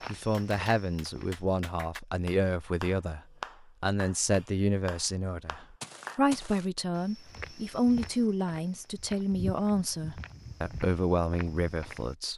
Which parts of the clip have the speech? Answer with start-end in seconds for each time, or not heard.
0.1-3.2, 3.8-12.3.